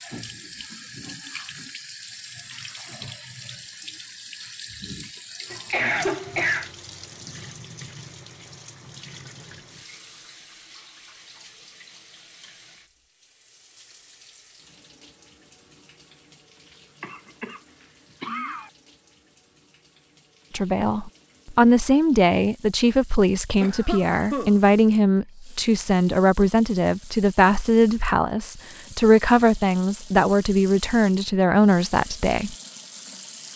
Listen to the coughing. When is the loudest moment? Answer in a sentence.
The volume of the coughing peaks at 6 seconds.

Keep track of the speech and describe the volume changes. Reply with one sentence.
The volume of the speech stays about the same.